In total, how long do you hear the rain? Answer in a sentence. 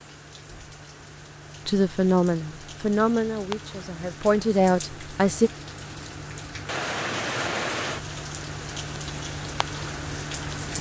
You can hear the rain for 11 seconds altogether.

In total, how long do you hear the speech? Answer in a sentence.
You can hear the speech for 4 seconds altogether.